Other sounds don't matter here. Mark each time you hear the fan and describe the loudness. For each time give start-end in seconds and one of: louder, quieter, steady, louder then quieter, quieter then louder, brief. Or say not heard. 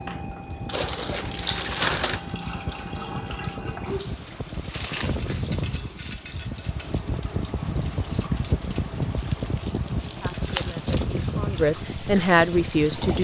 0.0-13.1 louder.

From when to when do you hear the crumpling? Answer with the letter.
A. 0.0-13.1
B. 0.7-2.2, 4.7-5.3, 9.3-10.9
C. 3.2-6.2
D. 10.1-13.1
B.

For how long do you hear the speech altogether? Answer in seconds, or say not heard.
3 s.